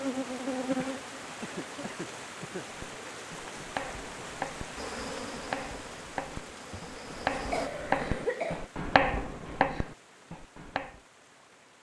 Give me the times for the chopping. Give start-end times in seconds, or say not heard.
2.7-11.0.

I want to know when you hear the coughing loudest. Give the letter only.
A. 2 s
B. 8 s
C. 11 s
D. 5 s
B.